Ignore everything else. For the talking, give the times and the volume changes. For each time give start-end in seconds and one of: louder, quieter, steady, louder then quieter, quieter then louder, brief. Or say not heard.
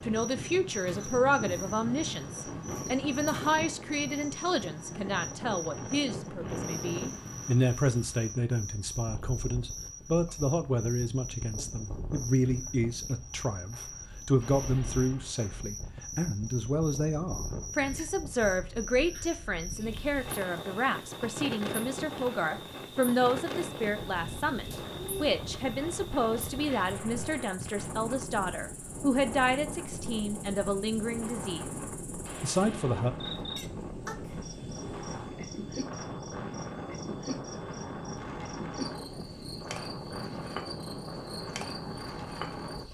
0.0-31.6 steady
32.4-33.1 brief.